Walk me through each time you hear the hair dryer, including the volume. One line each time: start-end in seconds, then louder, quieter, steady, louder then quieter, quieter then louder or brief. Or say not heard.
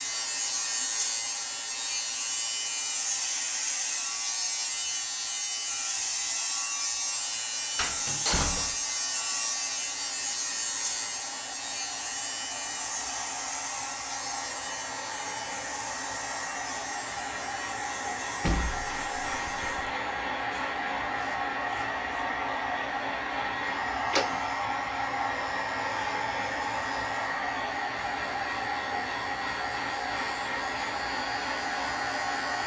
0.0-32.6 louder.